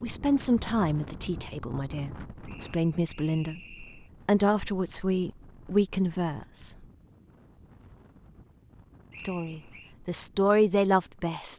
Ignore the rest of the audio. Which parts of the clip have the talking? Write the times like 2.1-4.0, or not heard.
0.0-6.8, 9.2-11.5.